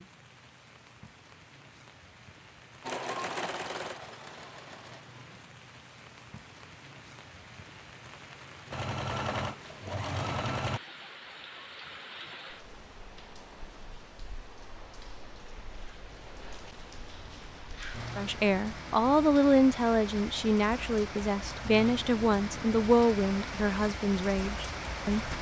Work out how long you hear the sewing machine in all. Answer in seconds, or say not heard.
4 s.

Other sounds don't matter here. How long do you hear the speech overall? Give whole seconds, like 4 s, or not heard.
7 s.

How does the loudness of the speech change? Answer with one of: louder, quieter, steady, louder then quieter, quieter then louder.
quieter.